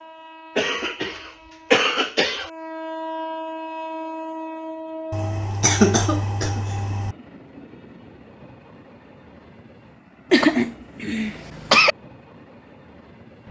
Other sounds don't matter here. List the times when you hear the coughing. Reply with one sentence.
You can hear the coughing from 0.6 to 2.5 s, from 5.1 to 7.2 s and from 10.3 to 11.9 s.